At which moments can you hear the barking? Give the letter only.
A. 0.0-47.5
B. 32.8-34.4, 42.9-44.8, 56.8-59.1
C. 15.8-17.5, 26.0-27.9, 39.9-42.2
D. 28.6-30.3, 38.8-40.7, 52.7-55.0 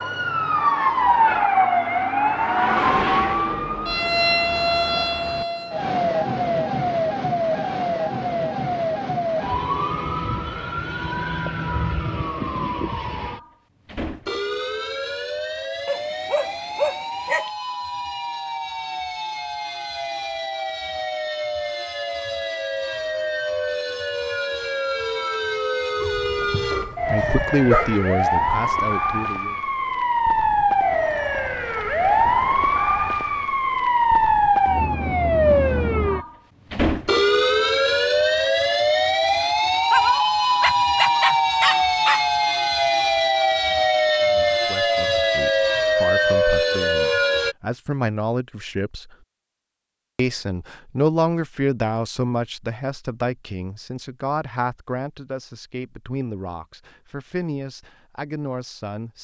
C.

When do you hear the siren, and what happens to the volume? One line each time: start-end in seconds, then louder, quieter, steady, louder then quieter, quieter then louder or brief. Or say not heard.
0.0-47.5 quieter then louder.